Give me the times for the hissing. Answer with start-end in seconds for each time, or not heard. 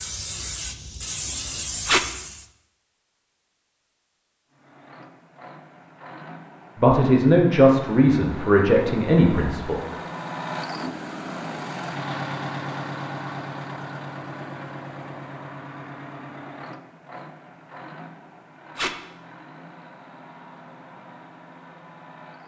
0.0-2.5.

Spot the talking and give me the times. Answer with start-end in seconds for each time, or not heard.
6.8-9.8.